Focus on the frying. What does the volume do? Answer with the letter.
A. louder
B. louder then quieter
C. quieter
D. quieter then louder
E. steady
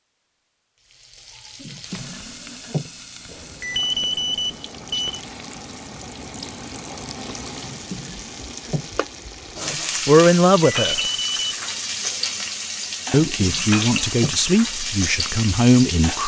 A.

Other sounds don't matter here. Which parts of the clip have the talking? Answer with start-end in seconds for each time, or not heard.
9.7-11.0, 13.1-16.2.